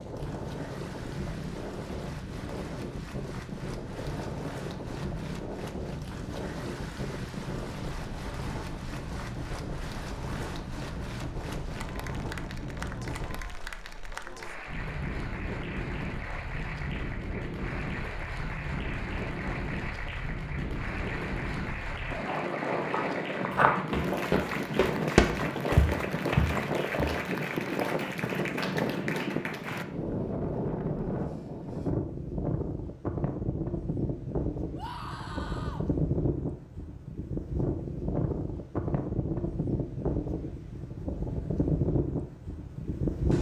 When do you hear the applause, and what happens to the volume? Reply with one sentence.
You can hear the applause from 0.0 to 29.9 s, getting louder.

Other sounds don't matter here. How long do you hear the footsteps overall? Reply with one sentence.
The footsteps can be heard for 4 seconds in total.